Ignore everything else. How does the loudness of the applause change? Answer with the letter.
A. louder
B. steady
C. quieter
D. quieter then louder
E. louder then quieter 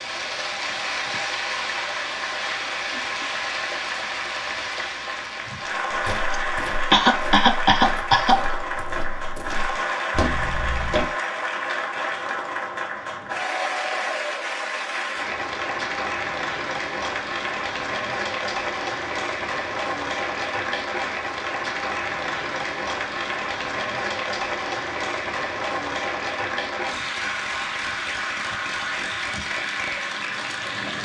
B.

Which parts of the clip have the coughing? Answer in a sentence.
The coughing can be heard from 6.3 to 8.6 s.